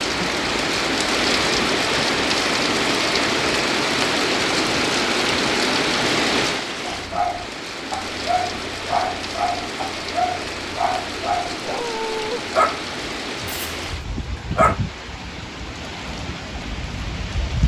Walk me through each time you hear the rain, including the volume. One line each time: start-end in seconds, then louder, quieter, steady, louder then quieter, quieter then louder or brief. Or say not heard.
0.0-17.6 quieter.